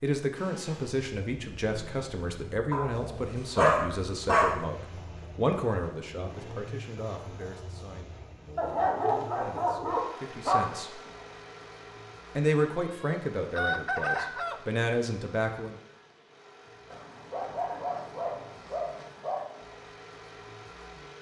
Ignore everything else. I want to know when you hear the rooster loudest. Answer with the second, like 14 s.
14 s.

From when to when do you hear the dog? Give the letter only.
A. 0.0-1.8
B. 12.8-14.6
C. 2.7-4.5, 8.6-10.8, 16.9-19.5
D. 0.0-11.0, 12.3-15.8
C.